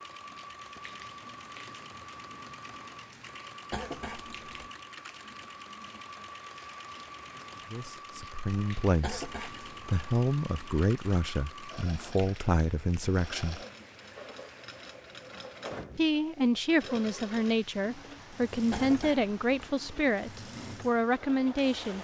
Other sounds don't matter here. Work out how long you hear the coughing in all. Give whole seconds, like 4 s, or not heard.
3 s.